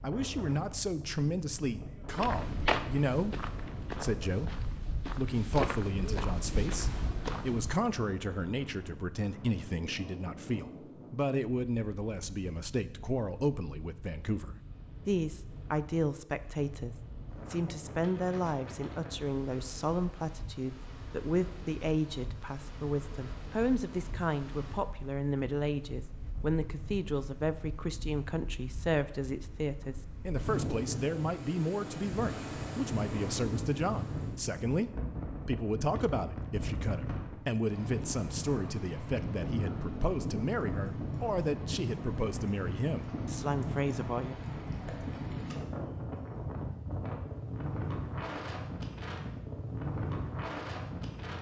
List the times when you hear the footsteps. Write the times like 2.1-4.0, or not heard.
2.1-7.8.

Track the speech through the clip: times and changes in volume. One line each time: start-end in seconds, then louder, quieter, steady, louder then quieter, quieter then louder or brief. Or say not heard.
0.0-44.4 steady.